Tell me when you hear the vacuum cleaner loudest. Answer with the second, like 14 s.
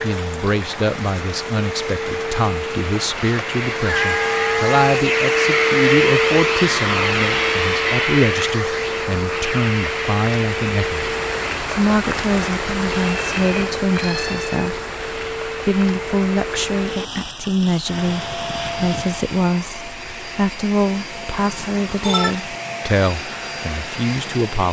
6 s.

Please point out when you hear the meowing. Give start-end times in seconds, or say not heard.
3.9-4.8, 13.1-14.7, 21.6-22.4.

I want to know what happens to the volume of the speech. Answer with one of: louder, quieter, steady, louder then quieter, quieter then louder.
steady.